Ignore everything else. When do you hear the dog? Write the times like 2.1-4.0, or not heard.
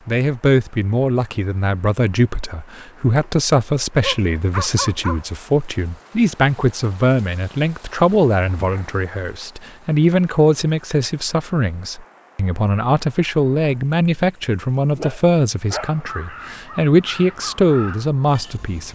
4.0-5.2, 14.9-16.1.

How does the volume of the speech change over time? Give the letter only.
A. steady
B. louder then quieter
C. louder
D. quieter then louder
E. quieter
A.